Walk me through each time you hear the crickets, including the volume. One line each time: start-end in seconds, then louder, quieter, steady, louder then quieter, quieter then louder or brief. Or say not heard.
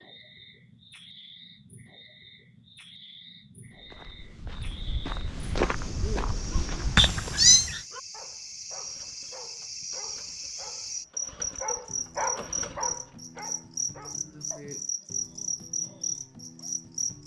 0.0-17.2 louder.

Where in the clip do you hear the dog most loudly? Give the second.
12 s.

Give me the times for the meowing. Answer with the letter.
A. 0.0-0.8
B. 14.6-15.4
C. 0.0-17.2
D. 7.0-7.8
D.